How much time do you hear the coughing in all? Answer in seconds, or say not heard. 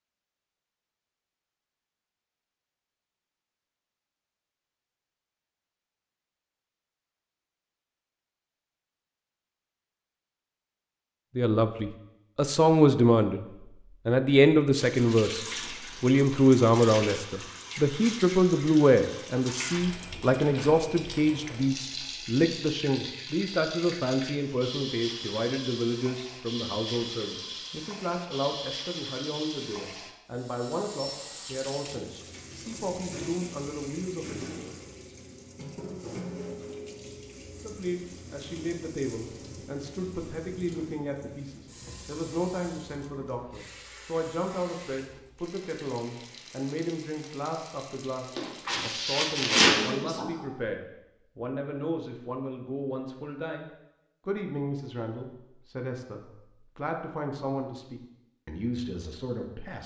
2 s.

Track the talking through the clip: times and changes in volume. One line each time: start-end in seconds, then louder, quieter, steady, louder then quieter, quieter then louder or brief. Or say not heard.
11.3-13.4 brief
14.1-34.8 quieter
37.6-59.8 steady.